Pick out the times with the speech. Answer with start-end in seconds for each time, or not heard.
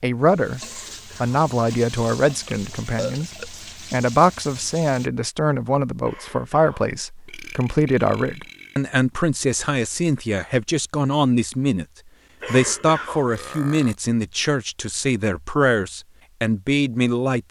0.0-11.8, 12.4-17.4.